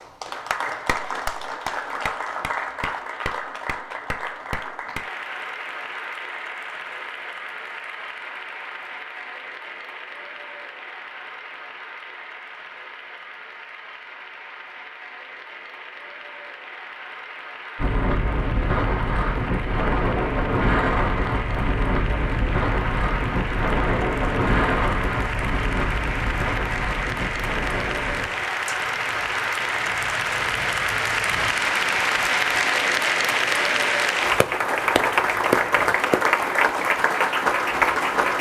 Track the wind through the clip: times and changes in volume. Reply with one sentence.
The wind can be heard from 17.8 to 38.3 s, getting quieter.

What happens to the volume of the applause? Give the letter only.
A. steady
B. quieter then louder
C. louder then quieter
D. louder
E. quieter
B.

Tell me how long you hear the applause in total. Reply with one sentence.
The applause can be heard for 38 seconds in total.